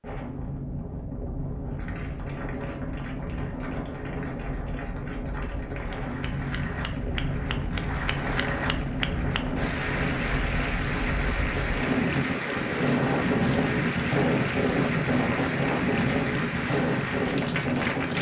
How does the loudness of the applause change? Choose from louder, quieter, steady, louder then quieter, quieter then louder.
louder.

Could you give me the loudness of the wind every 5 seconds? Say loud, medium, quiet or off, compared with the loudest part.
medium, medium, loud, loud.